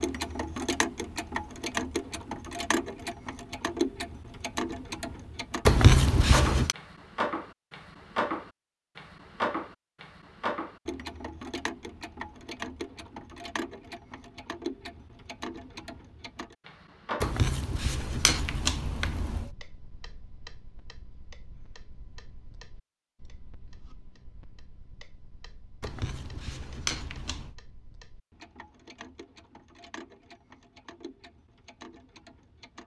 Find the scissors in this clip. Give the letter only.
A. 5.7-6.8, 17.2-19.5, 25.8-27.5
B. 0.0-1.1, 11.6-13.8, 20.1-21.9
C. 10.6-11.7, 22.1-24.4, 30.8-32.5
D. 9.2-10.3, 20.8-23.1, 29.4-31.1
A.